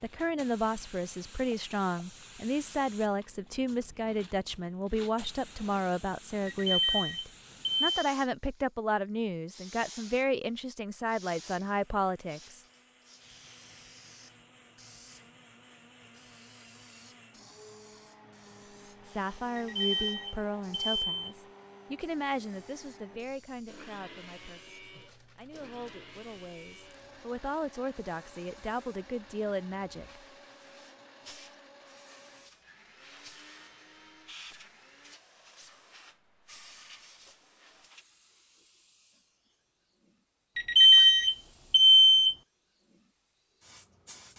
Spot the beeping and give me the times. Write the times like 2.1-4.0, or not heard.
6.5-8.1, 19.6-21.3, 40.5-42.4.